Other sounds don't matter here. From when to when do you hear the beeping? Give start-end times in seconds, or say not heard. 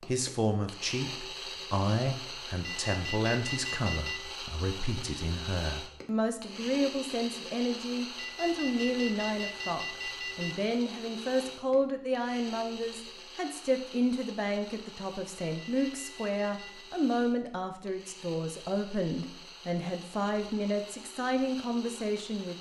2.6-4.3, 8.2-10.7, 15.4-16.9.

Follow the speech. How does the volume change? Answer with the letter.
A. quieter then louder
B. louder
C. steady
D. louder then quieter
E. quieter
C.